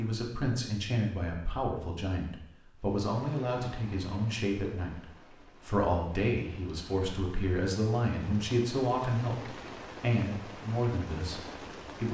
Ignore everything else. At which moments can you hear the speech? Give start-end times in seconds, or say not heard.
0.0-12.1.